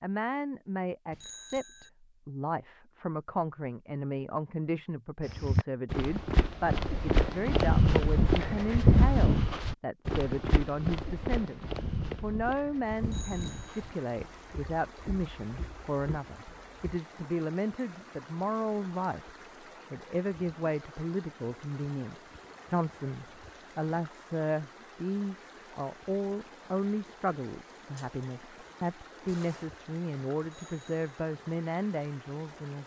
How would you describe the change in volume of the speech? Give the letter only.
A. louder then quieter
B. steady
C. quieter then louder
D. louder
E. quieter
B.